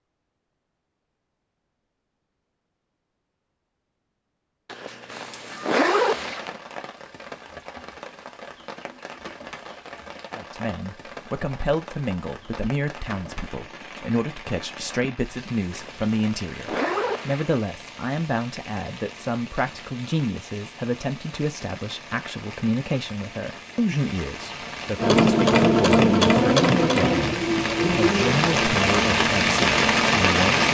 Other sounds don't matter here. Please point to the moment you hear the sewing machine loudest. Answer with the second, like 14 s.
26 s.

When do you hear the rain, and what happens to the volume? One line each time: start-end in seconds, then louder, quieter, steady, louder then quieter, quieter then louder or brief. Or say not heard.
5.0-30.7 louder.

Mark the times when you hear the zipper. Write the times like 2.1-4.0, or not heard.
4.7-6.5, 15.7-17.5.